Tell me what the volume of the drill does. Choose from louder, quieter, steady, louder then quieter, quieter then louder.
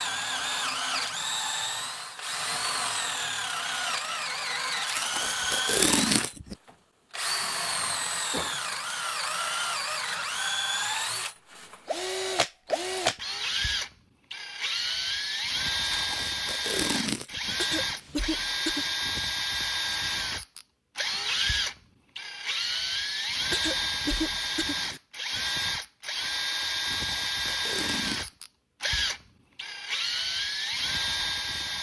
steady.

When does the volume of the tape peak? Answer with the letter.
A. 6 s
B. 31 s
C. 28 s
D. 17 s
A.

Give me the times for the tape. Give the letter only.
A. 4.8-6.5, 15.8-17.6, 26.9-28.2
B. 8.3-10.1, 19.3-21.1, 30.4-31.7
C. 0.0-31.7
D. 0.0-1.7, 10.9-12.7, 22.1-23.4
A.